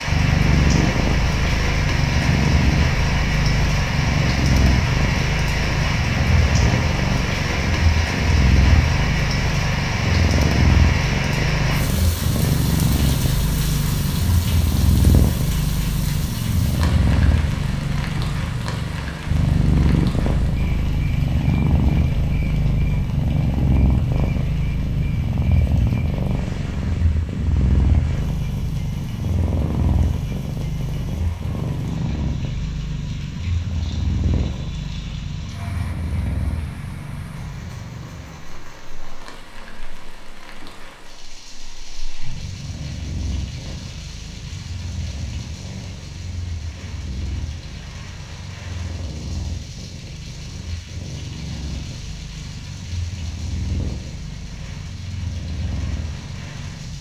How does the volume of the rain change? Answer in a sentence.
The volume of the rain goes down.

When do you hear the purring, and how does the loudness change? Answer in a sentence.
The purring can be heard from 0.0 to 56.9 s, getting quieter.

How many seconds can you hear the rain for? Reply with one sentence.
The rain can be heard for 57 seconds in total.